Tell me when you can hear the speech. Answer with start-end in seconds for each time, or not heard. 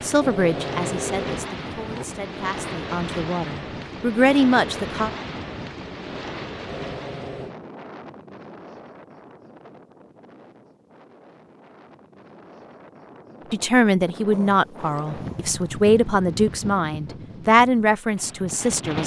0.0-5.1, 13.5-19.0.